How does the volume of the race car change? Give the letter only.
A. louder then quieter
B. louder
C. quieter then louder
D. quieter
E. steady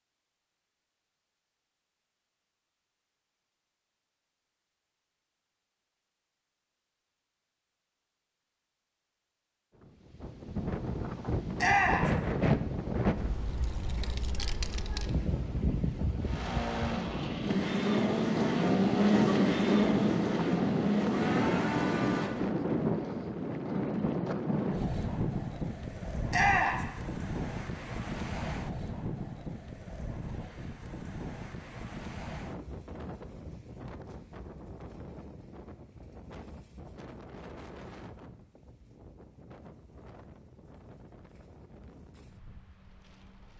A.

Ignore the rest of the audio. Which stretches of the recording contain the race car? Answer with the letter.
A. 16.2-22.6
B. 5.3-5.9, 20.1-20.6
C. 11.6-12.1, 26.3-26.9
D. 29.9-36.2
A.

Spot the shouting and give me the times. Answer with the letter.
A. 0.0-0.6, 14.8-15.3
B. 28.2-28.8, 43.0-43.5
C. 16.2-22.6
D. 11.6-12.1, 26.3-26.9
D.